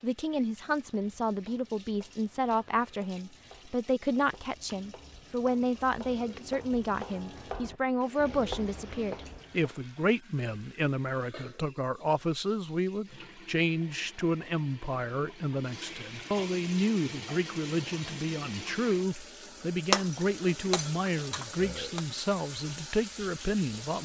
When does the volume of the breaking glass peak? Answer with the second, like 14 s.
20 s.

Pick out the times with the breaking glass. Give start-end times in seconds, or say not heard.
19.9-22.0.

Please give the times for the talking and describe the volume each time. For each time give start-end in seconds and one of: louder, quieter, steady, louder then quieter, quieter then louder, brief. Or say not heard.
0.0-24.0 steady.